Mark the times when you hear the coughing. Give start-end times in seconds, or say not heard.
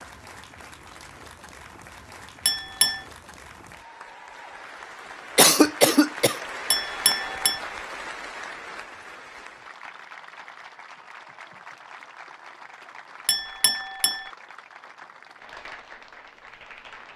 5.3-6.4.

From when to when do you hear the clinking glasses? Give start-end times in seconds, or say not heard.
2.5-3.0, 6.7-7.6, 13.2-14.3.